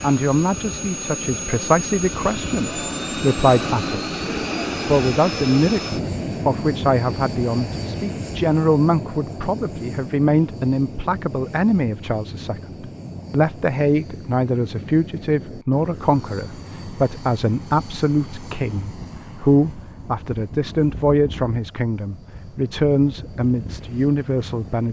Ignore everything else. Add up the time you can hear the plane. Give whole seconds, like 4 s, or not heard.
25 s.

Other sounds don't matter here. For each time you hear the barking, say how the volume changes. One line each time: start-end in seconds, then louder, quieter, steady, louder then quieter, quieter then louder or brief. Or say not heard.
not heard.